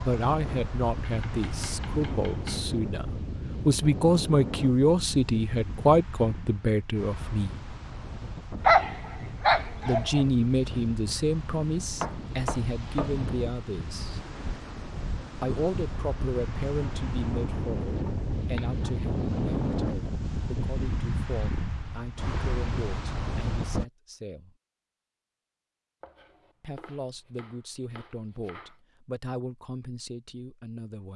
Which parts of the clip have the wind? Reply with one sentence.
The wind can be heard from 0.0 to 23.9 s.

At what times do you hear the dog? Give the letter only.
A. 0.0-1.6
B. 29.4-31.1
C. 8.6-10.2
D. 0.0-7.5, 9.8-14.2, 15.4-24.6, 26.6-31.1
C.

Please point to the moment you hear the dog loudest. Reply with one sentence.
The loudest moment of the dog is at 9 seconds.